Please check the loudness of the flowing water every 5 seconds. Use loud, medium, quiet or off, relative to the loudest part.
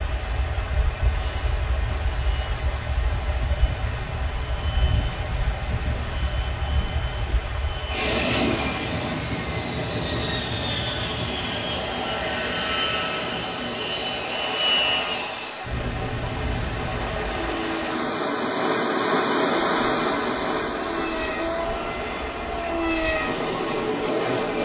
medium, medium, medium, loud, loud.